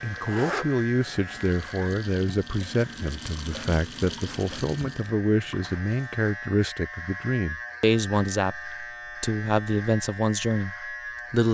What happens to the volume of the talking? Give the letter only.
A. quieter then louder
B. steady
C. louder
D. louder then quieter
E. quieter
B.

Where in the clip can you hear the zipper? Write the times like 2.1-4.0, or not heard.
0.2-1.5.